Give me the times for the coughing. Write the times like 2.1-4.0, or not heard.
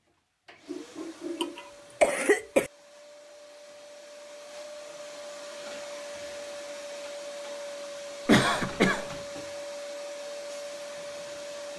0.7-2.7, 8.2-9.1.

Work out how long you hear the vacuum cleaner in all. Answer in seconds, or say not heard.
11 s.